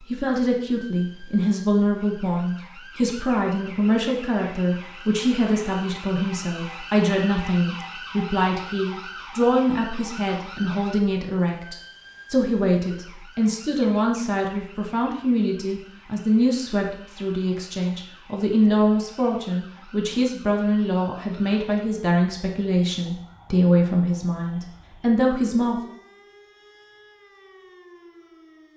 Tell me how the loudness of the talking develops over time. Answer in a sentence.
The loudness of the talking stays about the same.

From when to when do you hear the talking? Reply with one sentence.
You can hear the talking from 0.1 to 25.8 s.